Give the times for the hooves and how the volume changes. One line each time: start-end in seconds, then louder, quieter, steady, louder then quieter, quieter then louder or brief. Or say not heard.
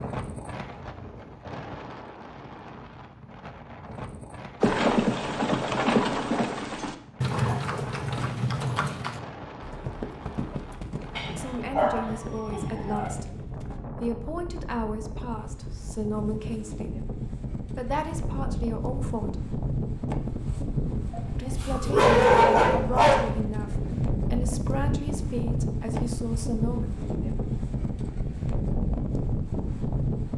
4.6-13.8 quieter
23.6-25.0 brief.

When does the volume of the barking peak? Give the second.
22 s.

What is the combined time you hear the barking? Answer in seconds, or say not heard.
4 s.